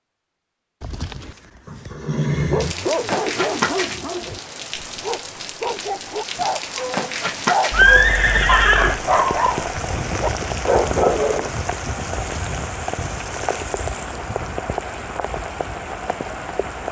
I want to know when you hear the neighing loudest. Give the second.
8 s.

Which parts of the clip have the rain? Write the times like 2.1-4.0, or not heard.
2.6-16.8.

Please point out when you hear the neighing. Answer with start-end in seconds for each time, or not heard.
0.8-2.8, 7.7-9.0, 12.2-12.6.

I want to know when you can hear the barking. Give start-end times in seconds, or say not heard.
2.4-11.5.